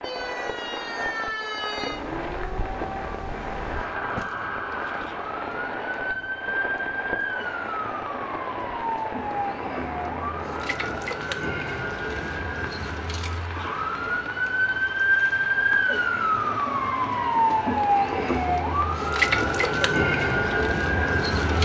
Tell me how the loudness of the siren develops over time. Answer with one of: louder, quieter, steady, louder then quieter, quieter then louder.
louder.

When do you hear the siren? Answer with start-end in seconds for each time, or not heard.
0.0-21.5.